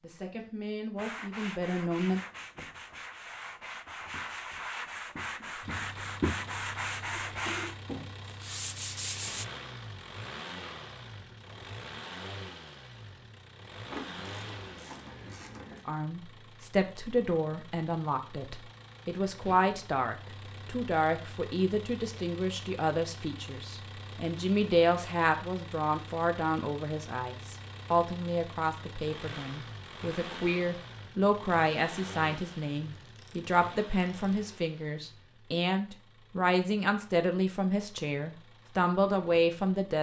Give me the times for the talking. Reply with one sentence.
The talking can be heard from 0.0 to 2.2 s and from 15.8 to 39.9 s.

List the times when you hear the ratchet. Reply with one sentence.
You can hear the ratchet from 13.9 to 15.8 s and from 33.0 to 34.5 s.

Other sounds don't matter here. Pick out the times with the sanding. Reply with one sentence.
You can hear the sanding from 0.9 to 9.4 s.